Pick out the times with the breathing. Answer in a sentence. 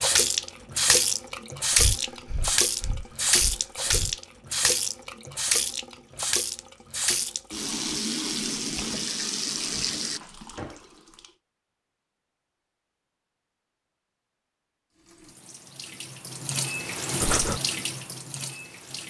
You can hear the breathing from 1.7 to 4.2 s and from 17.2 to 17.6 s.